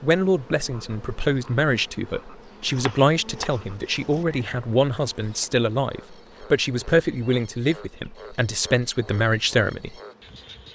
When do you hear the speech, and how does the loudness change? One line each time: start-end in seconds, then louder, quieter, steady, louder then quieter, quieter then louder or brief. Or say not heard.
0.0-9.9 steady.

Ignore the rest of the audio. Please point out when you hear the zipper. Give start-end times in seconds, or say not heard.
not heard.